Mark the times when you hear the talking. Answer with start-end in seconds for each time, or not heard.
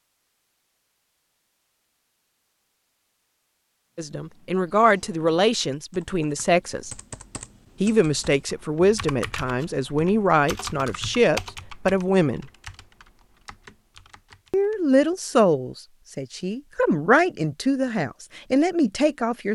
4.0-6.9, 7.8-12.5, 14.5-19.5.